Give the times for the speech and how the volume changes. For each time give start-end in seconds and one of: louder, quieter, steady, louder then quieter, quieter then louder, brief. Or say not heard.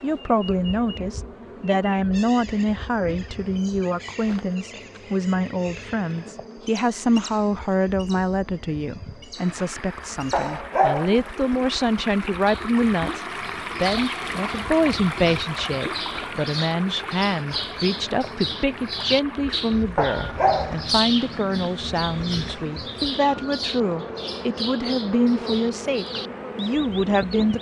0.0-27.5 steady.